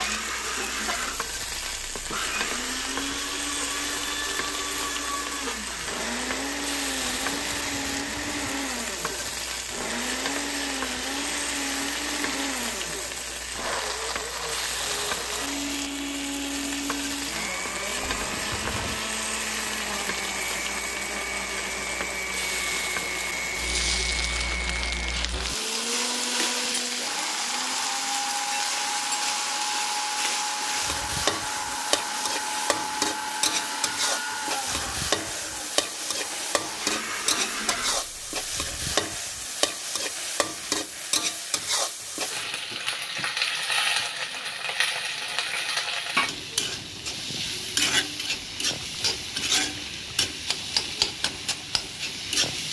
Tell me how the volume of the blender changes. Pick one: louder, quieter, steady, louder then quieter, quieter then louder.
steady.